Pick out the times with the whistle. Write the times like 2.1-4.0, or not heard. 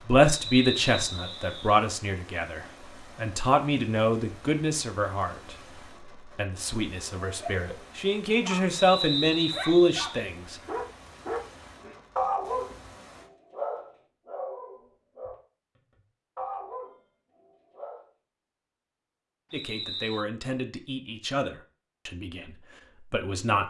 0.4-1.8, 8.8-10.0, 19.5-20.2.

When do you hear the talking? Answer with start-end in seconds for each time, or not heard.
0.0-10.6, 19.5-23.6.